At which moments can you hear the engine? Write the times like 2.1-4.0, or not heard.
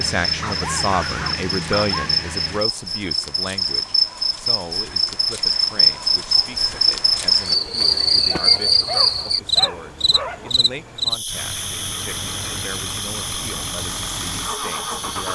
0.0-2.6, 11.2-15.2.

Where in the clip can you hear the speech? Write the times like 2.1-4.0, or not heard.
0.0-15.2.